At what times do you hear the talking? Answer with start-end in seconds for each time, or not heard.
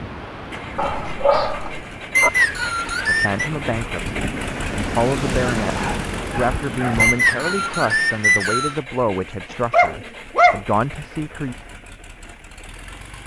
3.0-11.6.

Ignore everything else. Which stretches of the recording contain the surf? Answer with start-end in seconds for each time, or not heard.
0.0-8.3.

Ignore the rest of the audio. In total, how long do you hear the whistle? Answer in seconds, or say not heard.
3 s.